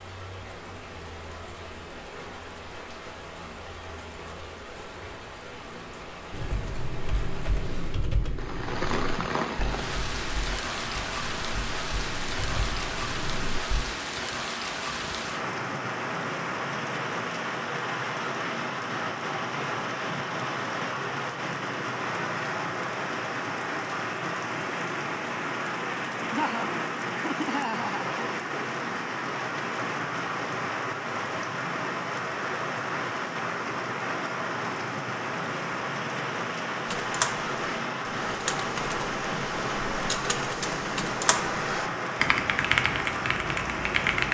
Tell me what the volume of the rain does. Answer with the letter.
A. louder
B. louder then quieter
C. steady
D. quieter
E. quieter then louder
A.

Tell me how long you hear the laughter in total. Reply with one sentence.
You can hear the laughter for 2 seconds altogether.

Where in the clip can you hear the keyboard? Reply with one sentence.
You can hear the keyboard from 6.3 to 13.8 s and from 36.9 to 44.3 s.